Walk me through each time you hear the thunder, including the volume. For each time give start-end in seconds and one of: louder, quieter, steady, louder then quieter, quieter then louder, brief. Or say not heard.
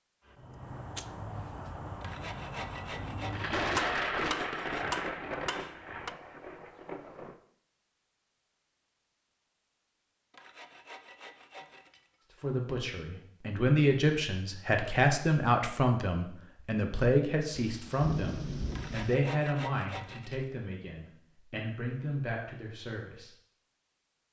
3.3-7.3 quieter
17.5-19.1 brief.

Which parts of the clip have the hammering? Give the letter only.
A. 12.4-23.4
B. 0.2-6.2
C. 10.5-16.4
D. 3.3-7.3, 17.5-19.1
B.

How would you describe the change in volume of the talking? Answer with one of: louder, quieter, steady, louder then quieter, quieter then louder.
quieter.